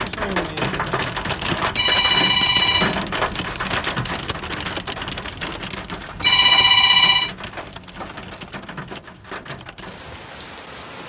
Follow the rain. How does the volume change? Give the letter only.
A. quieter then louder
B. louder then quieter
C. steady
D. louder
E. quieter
E.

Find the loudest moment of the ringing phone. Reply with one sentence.
The loudest moment of the ringing phone is at 7 seconds.